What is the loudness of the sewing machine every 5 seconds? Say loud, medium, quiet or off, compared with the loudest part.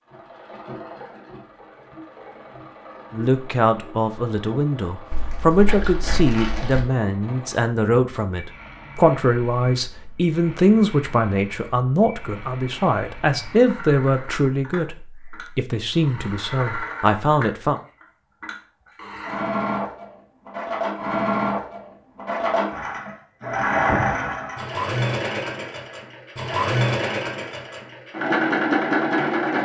quiet, quiet, quiet, medium, loud, loud.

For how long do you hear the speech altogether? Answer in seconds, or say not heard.
15 s.